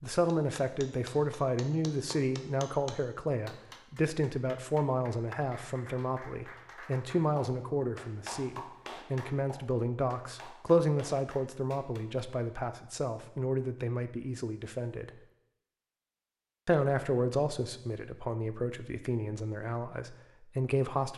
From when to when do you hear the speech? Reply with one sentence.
You can hear the speech from 0.0 to 15.1 s and from 16.6 to 21.1 s.